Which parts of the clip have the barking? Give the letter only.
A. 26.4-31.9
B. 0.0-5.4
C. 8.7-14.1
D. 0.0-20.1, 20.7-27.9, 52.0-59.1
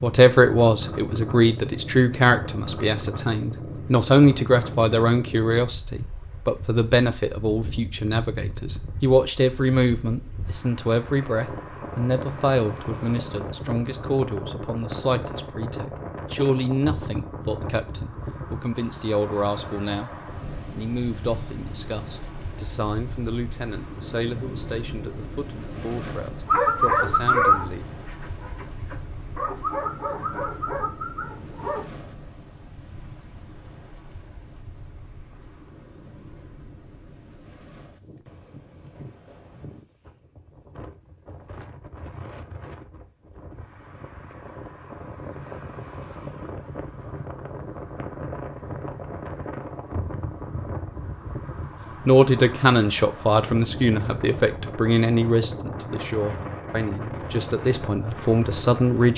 A.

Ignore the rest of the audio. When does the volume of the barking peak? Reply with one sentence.
The loudest moment of the barking is at 27 seconds.